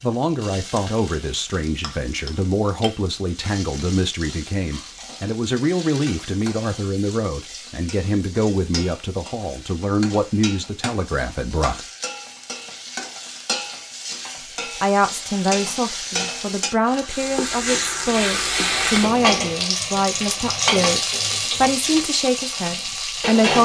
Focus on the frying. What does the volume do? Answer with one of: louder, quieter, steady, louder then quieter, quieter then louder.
louder.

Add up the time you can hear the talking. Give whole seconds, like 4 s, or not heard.
21 s.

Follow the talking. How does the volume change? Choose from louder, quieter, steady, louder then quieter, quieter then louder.
steady.